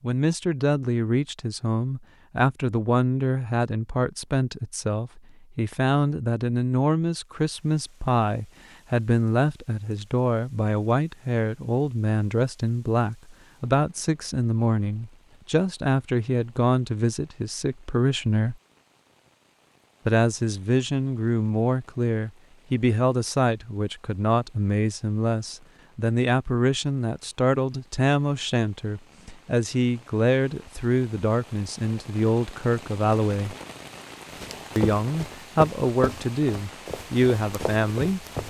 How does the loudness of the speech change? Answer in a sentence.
The volume of the speech stays about the same.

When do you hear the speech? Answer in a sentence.
The speech can be heard from 0.0 to 18.6 s, from 20.1 to 33.5 s and from 34.8 to 38.2 s.